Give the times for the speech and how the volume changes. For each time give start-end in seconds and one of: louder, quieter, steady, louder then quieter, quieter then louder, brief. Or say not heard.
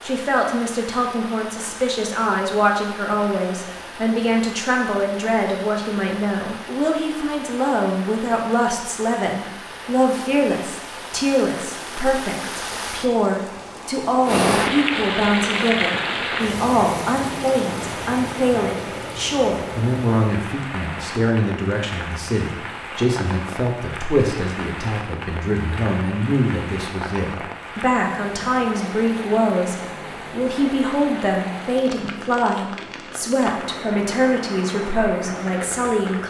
0.0-36.2 steady.